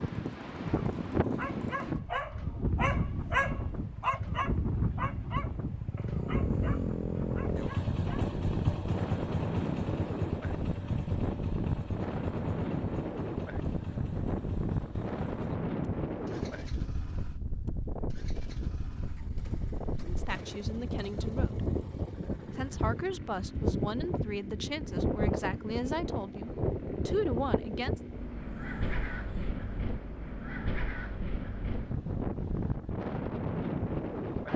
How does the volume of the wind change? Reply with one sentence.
The loudness of the wind stays about the same.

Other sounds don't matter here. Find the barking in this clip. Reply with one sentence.
The barking can be heard from 0.8 to 8.3 s.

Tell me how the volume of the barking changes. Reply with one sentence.
The loudness of the barking goes up, then down.